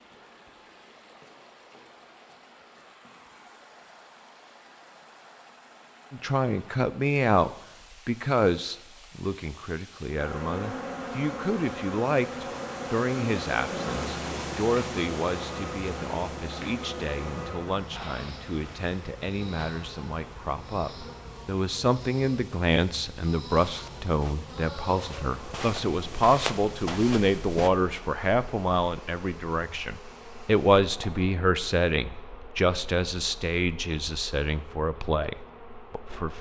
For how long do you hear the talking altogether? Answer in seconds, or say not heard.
30 s.